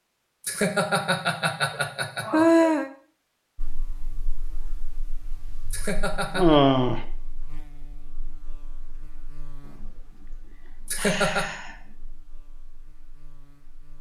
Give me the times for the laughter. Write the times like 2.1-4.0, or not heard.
0.5-2.5, 5.7-6.5, 10.8-11.4.